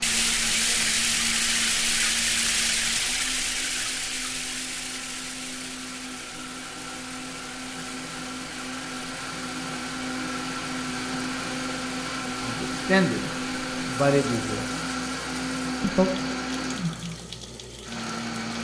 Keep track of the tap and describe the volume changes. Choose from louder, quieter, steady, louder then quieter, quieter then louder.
quieter.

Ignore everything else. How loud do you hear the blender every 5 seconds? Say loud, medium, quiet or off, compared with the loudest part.
medium, medium, loud, loud.